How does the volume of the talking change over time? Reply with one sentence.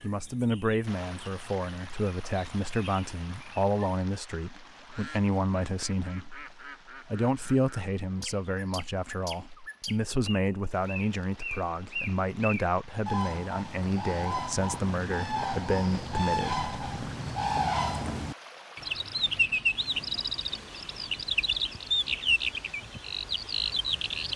The loudness of the talking stays about the same.